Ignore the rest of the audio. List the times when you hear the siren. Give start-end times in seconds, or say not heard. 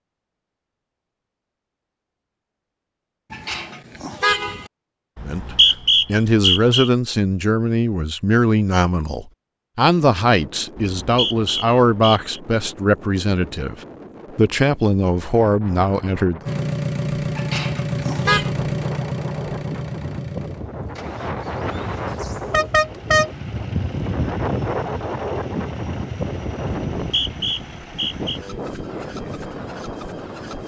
not heard.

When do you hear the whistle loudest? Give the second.
6 s.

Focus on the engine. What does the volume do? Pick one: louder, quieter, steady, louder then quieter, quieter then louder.
quieter.